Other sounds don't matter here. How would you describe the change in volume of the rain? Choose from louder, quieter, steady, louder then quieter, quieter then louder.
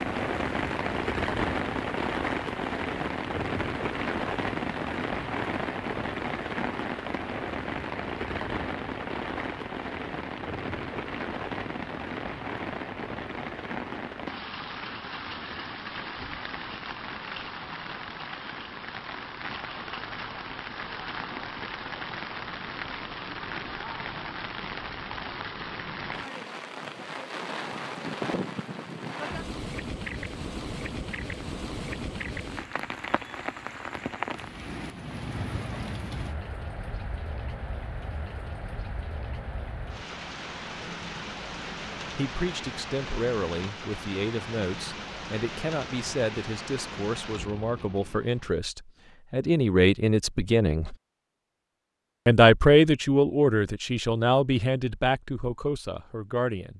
quieter.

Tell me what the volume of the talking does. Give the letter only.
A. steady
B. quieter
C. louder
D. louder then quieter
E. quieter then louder
D.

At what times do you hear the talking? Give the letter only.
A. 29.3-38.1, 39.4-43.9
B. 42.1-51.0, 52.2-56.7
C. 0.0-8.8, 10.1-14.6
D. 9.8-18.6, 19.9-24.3
B.